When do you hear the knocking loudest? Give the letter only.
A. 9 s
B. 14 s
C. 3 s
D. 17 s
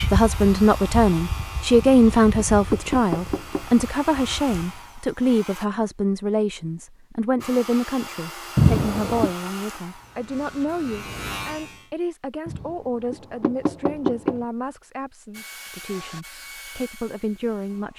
A.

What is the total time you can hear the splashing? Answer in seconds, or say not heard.
not heard.